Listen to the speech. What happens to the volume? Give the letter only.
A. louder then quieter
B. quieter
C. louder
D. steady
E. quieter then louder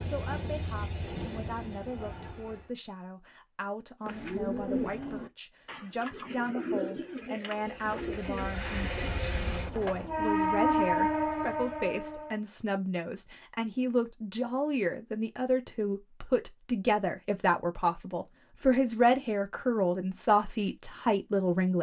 C.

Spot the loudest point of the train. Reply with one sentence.
The volume of the train peaks at 11 seconds.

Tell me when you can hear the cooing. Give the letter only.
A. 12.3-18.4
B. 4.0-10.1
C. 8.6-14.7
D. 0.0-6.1
B.